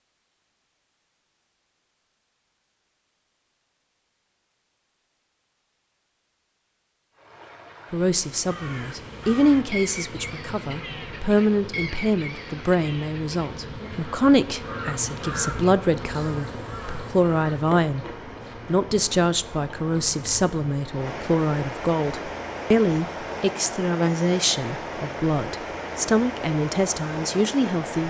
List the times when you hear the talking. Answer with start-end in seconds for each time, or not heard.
7.9-18.1, 18.6-28.0.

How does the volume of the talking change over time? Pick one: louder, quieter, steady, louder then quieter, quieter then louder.
steady.